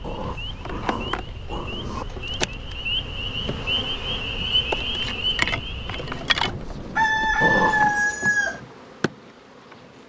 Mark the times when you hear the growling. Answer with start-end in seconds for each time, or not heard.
0.0-2.0, 7.4-8.0.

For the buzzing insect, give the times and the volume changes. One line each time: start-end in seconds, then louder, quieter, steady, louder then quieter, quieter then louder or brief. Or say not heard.
0.0-10.0 louder then quieter.